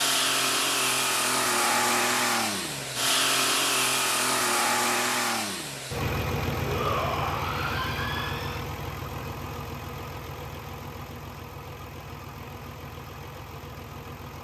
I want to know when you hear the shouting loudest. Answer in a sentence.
The loudest moment of the shouting is at 7 seconds.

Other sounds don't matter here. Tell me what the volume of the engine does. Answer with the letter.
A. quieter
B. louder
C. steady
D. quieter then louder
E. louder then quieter
A.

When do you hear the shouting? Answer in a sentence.
The shouting can be heard from 6.6 to 8.7 s.